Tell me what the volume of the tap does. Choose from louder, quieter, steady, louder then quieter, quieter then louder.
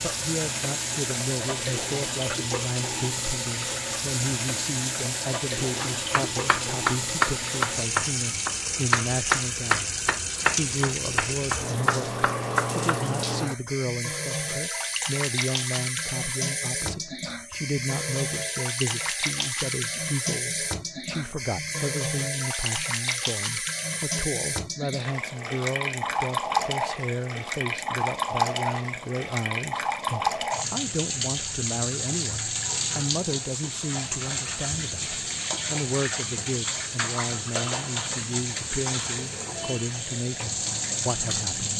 steady.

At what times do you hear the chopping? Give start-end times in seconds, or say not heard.
5.8-12.9.